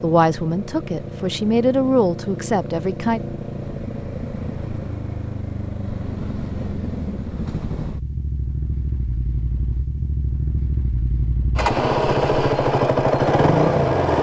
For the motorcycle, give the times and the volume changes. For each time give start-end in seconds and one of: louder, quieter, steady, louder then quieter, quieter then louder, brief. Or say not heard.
0.0-14.1 louder.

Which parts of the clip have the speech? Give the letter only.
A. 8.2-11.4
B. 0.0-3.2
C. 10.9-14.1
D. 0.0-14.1
B.